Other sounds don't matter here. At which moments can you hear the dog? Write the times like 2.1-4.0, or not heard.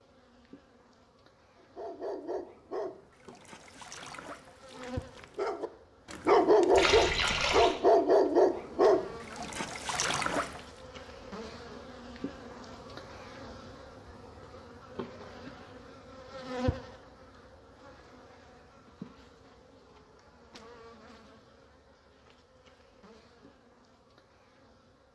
1.6-10.6.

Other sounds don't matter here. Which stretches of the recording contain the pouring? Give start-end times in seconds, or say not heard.
6.7-7.8.